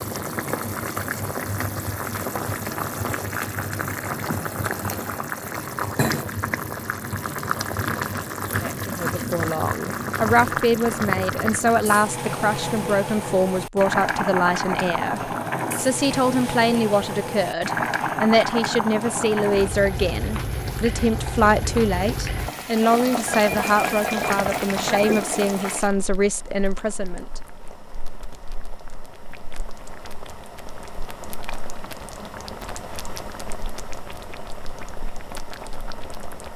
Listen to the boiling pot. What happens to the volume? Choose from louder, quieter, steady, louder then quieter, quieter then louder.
quieter.